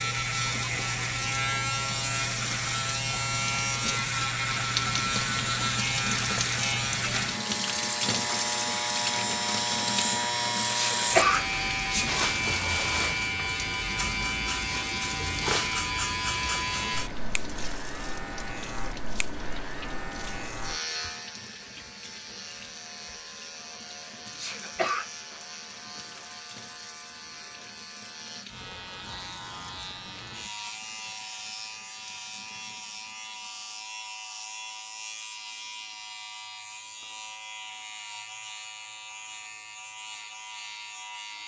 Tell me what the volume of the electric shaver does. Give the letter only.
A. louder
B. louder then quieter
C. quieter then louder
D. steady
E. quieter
E.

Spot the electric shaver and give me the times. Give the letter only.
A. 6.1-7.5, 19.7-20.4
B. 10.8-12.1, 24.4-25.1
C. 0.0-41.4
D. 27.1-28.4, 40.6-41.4
C.